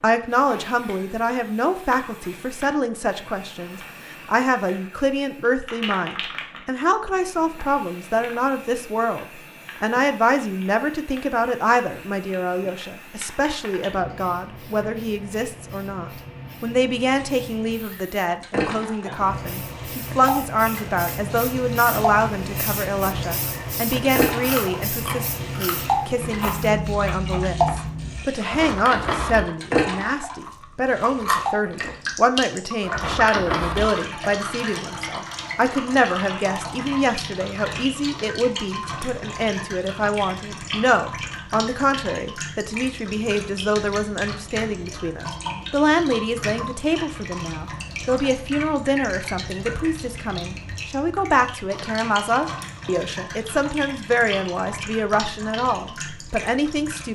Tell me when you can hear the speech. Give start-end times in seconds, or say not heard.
0.0-57.1.